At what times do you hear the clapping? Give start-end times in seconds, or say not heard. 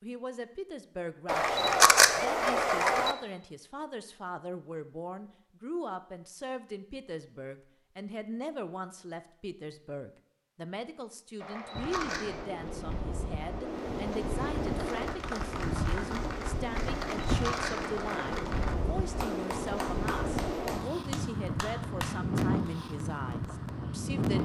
14.6-22.6.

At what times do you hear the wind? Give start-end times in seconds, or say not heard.
11.8-24.4.